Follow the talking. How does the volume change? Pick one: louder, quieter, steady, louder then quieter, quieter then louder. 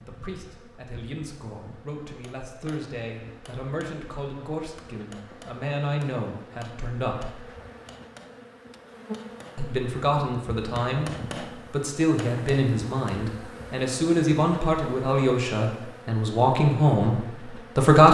louder.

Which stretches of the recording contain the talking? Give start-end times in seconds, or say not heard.
0.1-7.3, 9.6-18.0.